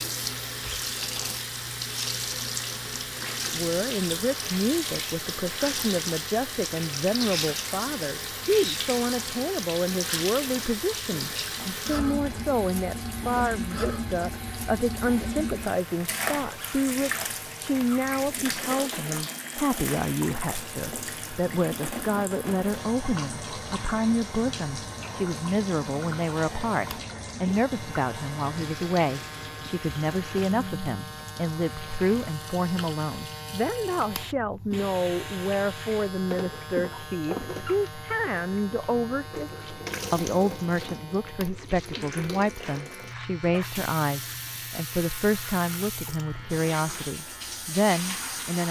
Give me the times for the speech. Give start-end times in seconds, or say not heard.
3.5-48.6.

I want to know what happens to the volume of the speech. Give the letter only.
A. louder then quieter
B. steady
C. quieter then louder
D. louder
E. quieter
B.